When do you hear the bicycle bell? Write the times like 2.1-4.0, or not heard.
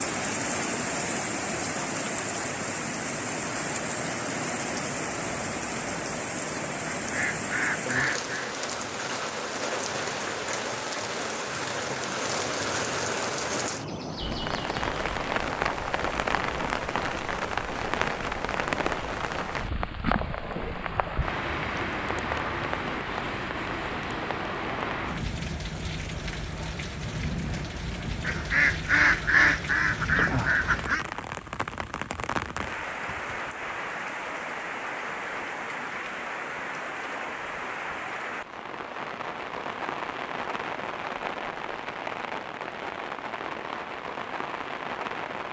not heard.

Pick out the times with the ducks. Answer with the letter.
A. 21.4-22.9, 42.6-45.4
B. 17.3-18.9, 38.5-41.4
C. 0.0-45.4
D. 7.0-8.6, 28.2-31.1
D.